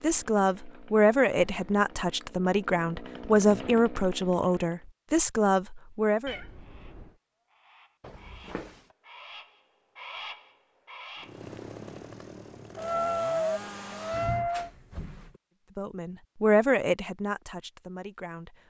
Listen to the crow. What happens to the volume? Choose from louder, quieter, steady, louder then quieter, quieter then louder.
louder.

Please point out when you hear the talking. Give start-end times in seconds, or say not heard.
0.0-6.3, 15.8-18.6.